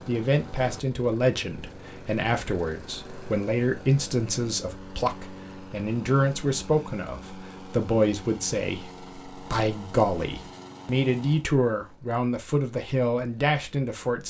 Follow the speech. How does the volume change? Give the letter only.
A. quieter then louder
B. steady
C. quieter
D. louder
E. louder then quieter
B.